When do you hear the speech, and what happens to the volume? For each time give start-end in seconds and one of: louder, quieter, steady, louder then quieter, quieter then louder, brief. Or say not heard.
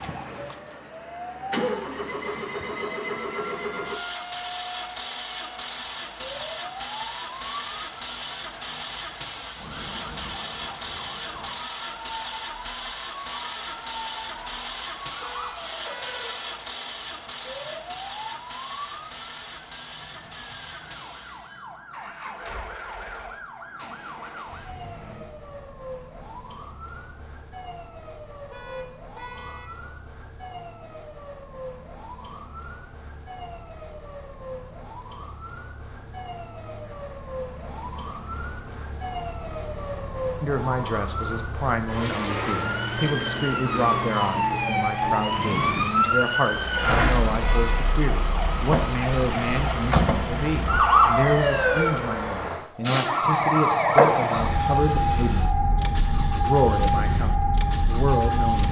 40.4-55.5 steady
56.4-58.6 brief.